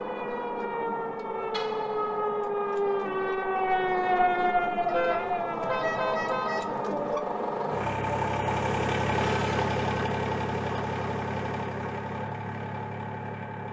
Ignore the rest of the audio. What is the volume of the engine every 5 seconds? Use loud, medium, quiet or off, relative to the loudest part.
medium, loud, loud.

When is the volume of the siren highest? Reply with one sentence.
The loudest moment of the siren is at 4 seconds.